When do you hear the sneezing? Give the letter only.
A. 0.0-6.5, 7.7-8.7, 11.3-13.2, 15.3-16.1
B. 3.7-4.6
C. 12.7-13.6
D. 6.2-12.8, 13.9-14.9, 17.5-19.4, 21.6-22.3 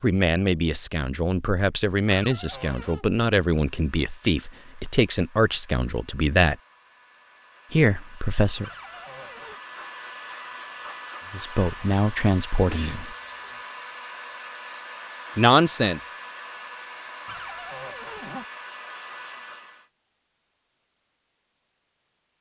C.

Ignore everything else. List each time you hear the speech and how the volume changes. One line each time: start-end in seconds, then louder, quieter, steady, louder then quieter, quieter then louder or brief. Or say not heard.
0.0-6.5 steady
7.7-8.7 brief
11.3-13.2 brief
15.3-16.1 brief.